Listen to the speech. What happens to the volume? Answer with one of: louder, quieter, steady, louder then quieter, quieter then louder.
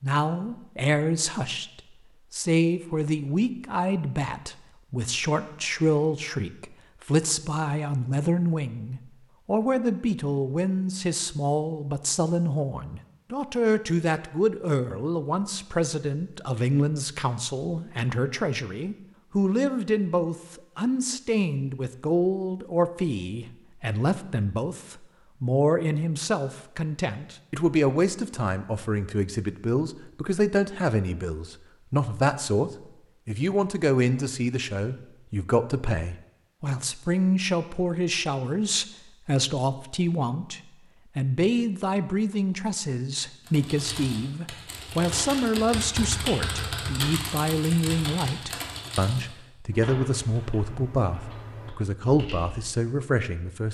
steady.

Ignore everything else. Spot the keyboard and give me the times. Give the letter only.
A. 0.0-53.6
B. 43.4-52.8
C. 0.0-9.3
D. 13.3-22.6
B.